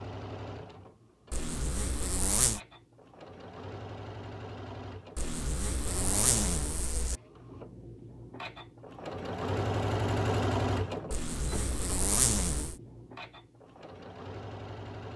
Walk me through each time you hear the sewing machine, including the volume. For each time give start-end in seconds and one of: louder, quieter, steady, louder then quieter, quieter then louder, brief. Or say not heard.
0.0-15.1 louder then quieter.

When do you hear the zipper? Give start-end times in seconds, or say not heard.
1.3-2.6, 5.2-7.2, 11.1-12.8.